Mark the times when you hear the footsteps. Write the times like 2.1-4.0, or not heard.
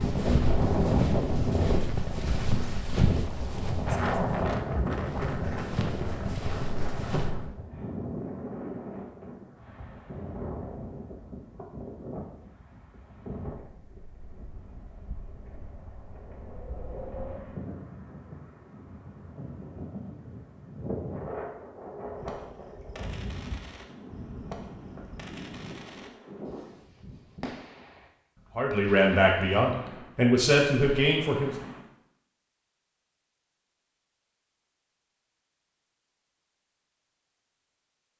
0.0-7.3.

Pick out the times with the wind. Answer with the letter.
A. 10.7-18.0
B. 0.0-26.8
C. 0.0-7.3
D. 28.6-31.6
B.